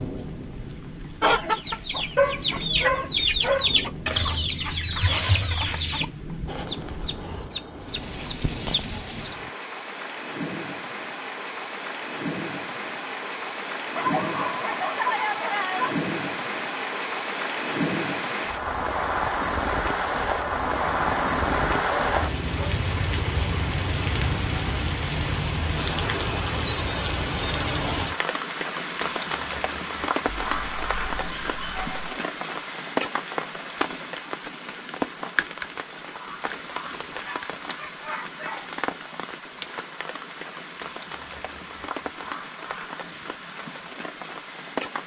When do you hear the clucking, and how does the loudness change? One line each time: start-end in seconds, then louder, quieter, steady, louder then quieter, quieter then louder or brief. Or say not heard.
1.2-9.5 steady.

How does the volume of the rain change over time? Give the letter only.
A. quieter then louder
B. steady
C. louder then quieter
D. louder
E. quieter
C.